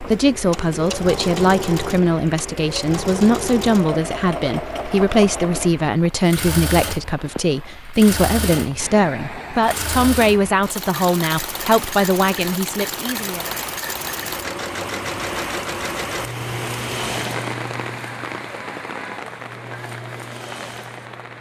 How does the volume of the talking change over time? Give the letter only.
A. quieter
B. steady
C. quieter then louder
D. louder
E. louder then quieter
B.